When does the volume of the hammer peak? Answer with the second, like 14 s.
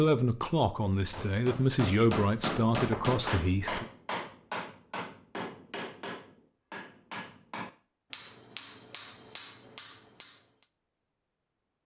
3 s.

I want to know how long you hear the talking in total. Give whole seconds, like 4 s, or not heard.
4 s.